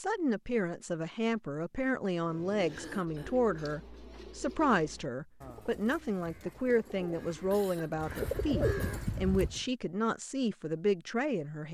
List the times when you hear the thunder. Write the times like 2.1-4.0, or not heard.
not heard.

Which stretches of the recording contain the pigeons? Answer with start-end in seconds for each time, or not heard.
2.1-9.7.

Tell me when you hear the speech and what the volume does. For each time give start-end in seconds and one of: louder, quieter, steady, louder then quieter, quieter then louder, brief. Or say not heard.
0.0-11.6 steady.